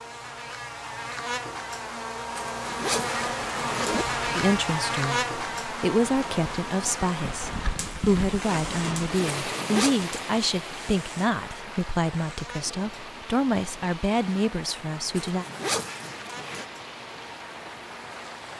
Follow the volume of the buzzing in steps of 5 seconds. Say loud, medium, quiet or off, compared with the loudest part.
loud, loud, quiet, quiet.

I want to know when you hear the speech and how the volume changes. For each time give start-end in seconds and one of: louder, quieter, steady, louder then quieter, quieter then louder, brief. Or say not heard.
4.3-15.4 steady.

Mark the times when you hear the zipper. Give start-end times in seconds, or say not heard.
2.4-4.0, 9.3-9.9, 15.2-16.6.